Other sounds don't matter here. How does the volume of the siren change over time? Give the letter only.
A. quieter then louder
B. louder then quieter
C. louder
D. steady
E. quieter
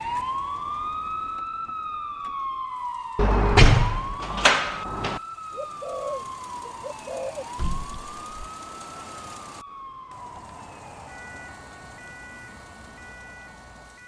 E.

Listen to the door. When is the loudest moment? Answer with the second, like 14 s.
4 s.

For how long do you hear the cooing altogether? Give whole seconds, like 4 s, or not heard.
2 s.